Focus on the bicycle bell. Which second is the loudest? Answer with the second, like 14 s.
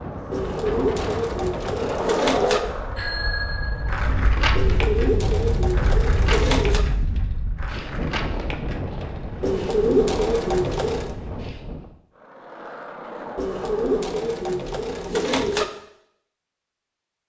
3 s.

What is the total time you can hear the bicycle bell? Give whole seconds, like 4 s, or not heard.
2 s.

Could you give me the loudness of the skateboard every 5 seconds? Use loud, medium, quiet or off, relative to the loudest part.
loud, medium, medium, off.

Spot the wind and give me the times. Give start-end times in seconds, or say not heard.
0.0-11.9.